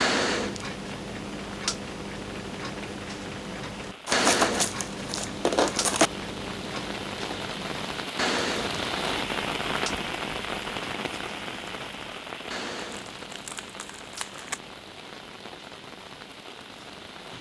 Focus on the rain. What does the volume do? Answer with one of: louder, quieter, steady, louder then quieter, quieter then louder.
louder then quieter.